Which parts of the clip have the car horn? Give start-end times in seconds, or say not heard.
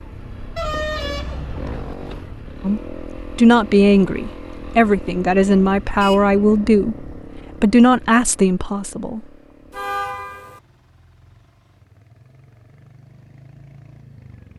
0.6-2.2, 5.8-7.2, 9.7-10.6.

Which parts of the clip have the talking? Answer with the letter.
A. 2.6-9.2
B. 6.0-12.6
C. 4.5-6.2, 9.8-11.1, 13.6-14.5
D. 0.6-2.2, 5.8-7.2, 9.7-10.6
A.